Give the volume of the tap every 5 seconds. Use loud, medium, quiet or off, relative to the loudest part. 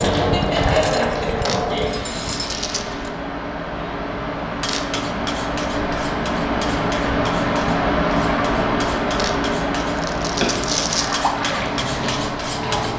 loud, off, loud.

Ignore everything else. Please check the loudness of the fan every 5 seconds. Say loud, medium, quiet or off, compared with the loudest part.
medium, loud, medium.